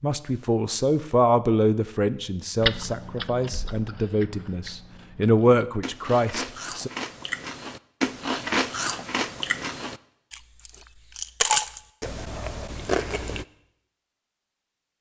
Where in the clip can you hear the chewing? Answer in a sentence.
The chewing can be heard from 2.6 to 13.4 s.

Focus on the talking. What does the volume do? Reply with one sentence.
The volume of the talking goes down, then up.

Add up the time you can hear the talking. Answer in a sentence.
The talking can be heard for 7 seconds in total.